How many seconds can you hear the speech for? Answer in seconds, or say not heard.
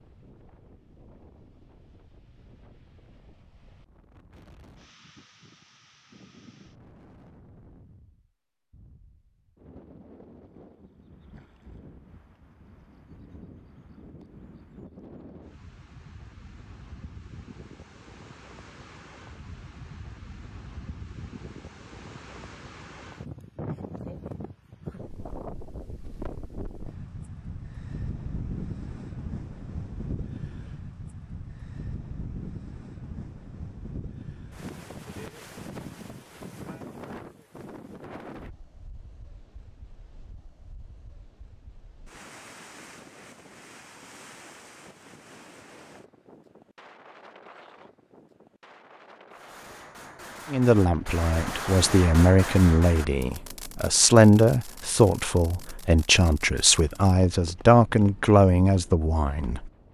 9 s.